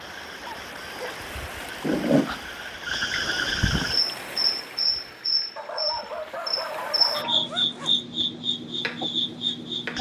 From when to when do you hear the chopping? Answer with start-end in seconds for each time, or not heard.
8.8-9.9.